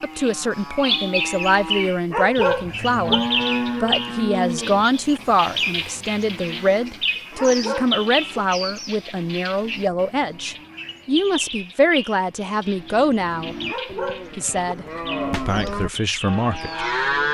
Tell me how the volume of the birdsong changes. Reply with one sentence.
The volume of the birdsong goes down.